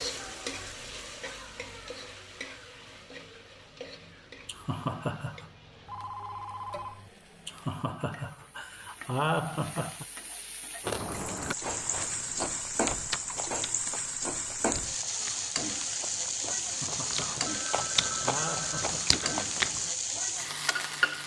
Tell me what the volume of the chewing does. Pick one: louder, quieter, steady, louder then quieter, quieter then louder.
quieter then louder.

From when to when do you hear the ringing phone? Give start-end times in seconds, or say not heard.
5.8-7.1, 17.4-19.4.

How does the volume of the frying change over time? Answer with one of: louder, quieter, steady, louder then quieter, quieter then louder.
quieter then louder.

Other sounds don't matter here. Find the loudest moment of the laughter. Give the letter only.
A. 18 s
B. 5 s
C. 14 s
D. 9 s
D.